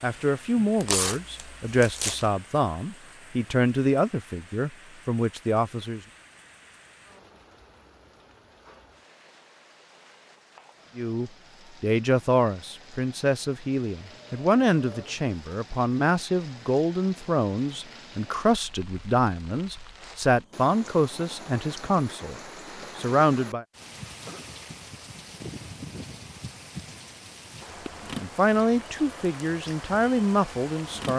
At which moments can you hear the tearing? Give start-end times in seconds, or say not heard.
0.8-2.3.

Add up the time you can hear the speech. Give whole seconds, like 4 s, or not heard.
21 s.